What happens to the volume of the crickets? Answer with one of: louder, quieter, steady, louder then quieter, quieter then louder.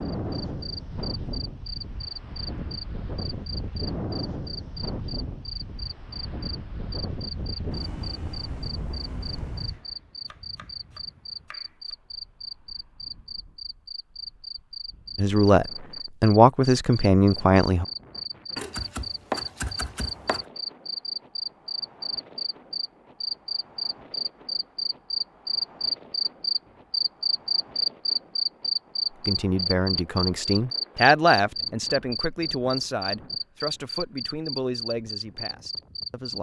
louder.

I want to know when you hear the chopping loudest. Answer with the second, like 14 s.
19 s.